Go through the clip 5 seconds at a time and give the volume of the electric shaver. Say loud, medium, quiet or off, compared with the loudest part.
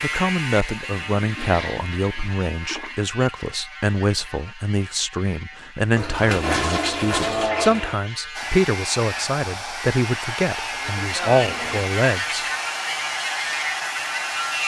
medium, medium, loud.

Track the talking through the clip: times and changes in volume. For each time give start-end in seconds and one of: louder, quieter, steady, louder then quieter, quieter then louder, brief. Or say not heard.
0.0-12.4 steady.